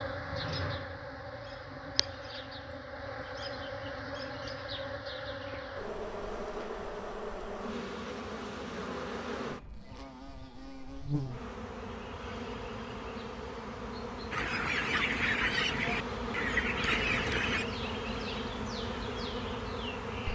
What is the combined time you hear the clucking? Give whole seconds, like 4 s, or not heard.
3 s.